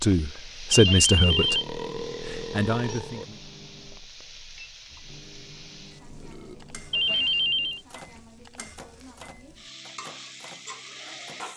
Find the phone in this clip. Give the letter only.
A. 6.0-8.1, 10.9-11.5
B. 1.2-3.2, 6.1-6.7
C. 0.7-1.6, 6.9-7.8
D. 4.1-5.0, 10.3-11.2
C.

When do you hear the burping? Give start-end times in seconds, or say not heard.
1.2-3.2, 6.1-6.7.